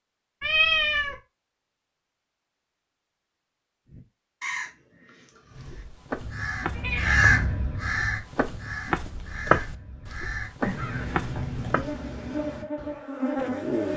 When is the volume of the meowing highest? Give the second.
1 s.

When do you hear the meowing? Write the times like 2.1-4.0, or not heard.
0.4-1.1, 6.7-7.4, 10.7-11.8.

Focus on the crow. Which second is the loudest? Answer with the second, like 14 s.
7 s.